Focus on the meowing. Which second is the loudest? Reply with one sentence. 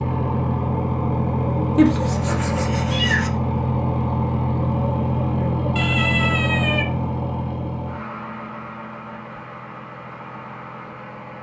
The loudest moment of the meowing is at 2 seconds.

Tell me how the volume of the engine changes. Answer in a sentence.
The volume of the engine goes down.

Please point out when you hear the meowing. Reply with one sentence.
You can hear the meowing from 1.8 to 3.3 s and from 5.8 to 6.8 s.